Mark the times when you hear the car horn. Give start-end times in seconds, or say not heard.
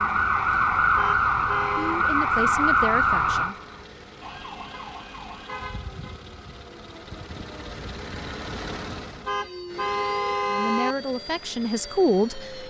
0.9-2.0, 4.7-6.2, 9.2-10.9.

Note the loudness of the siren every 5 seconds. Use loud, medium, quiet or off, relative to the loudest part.
loud, quiet, quiet.